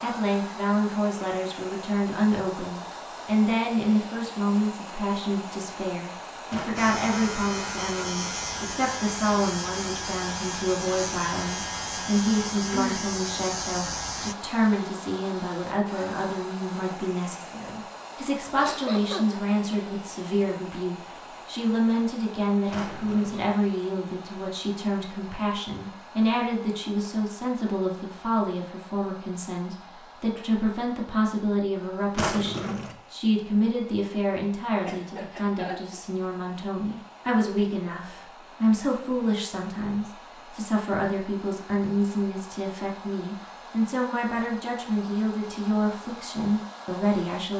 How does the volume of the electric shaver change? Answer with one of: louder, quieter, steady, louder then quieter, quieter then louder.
steady.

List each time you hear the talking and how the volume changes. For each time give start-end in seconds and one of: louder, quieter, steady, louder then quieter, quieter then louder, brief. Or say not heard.
0.0-47.5 steady.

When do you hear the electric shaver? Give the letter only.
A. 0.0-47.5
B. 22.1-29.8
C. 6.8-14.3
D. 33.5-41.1
C.